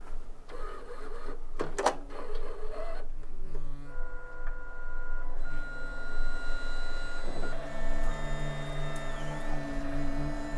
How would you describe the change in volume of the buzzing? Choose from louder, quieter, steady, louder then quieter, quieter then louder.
louder.